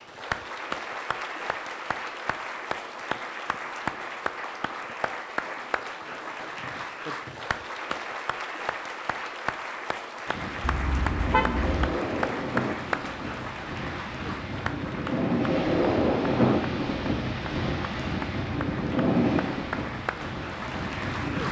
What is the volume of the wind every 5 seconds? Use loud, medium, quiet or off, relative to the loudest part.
off, off, medium, loud, medium.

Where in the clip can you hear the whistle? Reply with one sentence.
You can hear the whistle from 6.6 to 7.3 s.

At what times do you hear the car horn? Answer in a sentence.
You can hear the car horn from 10.6 to 11.8 s.